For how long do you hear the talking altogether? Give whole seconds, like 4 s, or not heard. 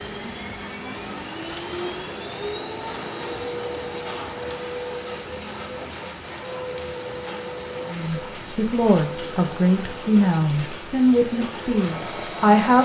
5 s.